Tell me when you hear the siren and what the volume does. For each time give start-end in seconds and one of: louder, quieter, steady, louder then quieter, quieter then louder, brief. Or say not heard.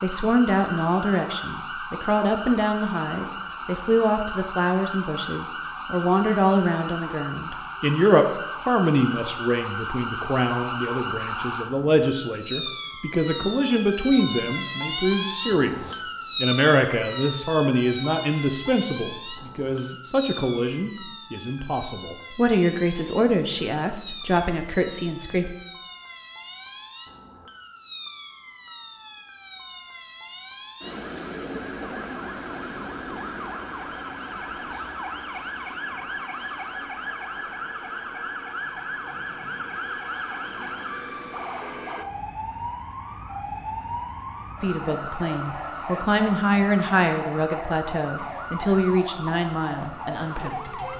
0.0-50.9 louder then quieter.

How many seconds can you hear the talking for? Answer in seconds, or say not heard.
32 s.